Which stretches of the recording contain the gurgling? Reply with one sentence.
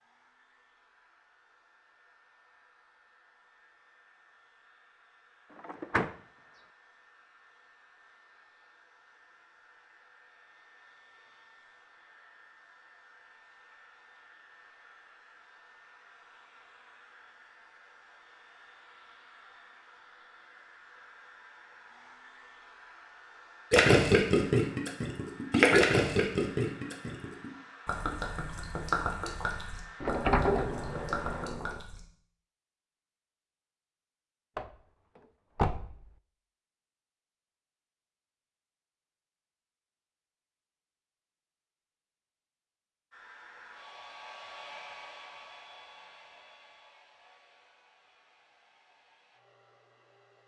You can hear the gurgling from 23.7 to 32.0 s.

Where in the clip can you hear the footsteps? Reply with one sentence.
The footsteps can't be heard in this clip.